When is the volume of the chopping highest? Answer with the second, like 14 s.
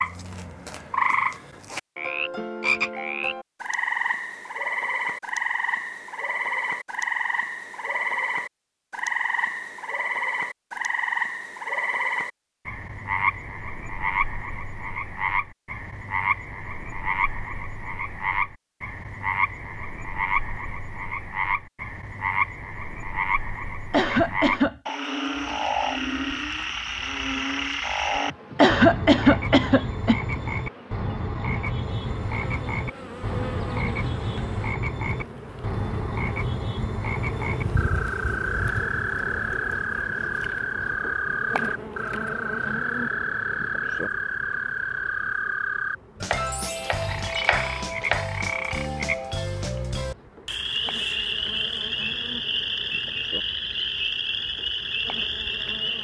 48 s.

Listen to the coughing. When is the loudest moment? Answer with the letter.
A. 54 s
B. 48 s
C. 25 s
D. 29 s
D.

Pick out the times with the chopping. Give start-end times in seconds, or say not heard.
46.2-48.2.